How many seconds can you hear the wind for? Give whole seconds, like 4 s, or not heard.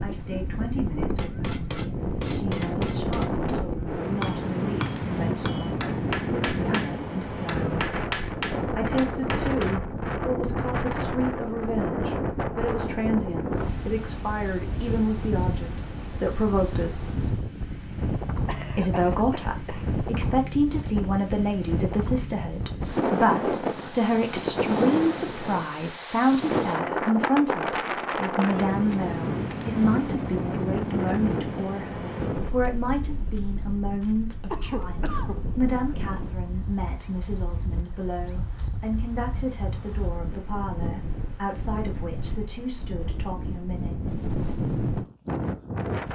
46 s.